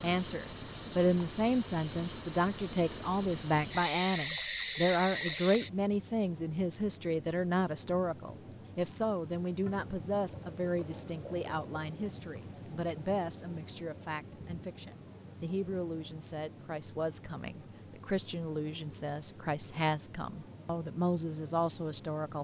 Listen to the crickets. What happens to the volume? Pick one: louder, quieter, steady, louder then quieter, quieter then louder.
steady.